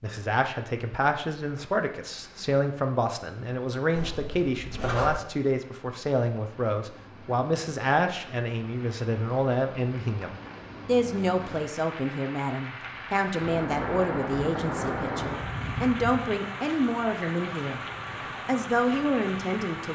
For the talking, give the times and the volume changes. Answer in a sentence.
You can hear the talking from 0.0 to 17.8 s, at a steady volume; and briefly from 18.4 to 19.9 s.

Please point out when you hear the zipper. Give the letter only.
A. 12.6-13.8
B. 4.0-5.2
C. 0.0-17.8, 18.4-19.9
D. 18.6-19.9
B.